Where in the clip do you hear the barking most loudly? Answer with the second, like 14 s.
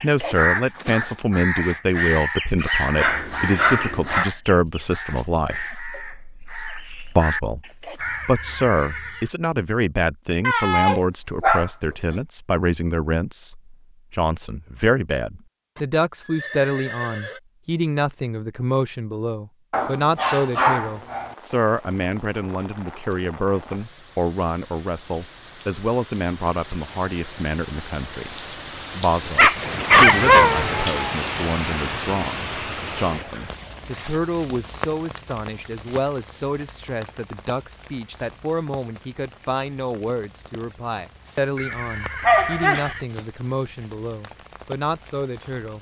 30 s.